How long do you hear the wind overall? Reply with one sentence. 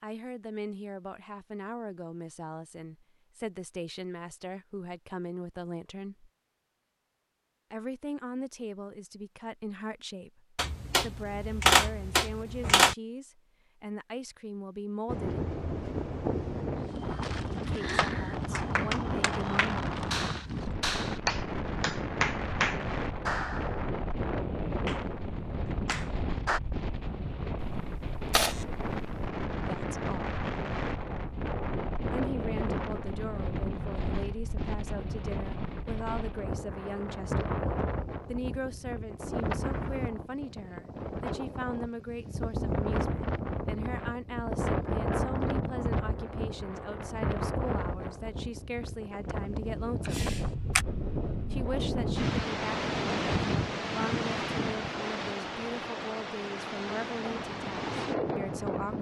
You can hear the wind for 44 seconds altogether.